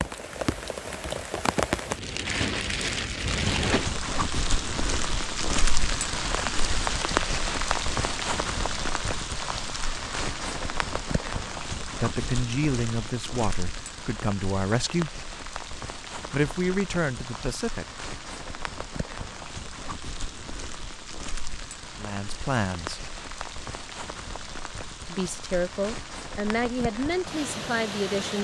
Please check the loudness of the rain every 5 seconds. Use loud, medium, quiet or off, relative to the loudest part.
loud, loud, medium, medium, medium, medium.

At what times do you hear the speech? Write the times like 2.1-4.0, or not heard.
12.0-15.2, 16.3-17.9, 21.9-23.1, 25.1-28.4.